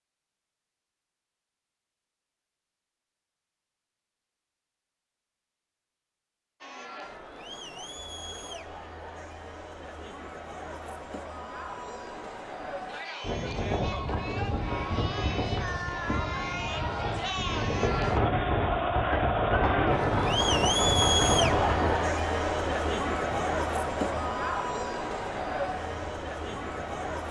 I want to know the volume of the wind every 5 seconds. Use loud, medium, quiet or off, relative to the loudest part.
off, off, loud, loud, loud, quiet.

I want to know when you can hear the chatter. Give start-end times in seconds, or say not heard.
6.6-27.2.